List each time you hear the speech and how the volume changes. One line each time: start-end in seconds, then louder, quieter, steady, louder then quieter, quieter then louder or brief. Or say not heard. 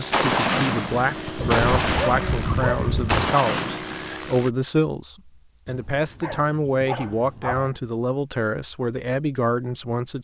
0.0-10.1 steady.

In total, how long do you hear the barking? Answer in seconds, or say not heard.
4 s.